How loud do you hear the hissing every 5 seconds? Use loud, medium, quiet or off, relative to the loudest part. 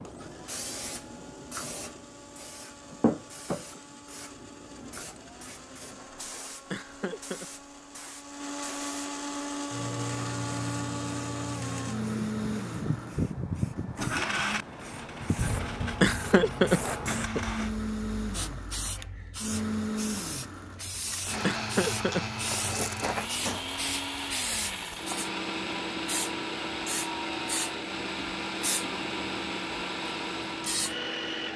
loud, medium, loud, loud, loud, loud, loud.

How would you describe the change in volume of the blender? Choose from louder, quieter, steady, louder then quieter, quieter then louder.
louder.